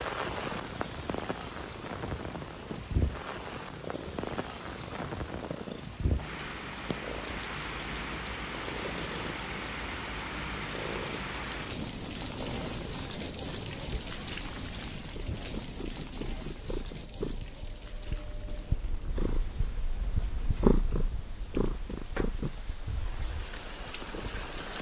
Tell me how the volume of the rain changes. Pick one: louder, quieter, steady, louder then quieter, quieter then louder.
quieter.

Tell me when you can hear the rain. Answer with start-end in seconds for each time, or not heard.
0.0-24.7.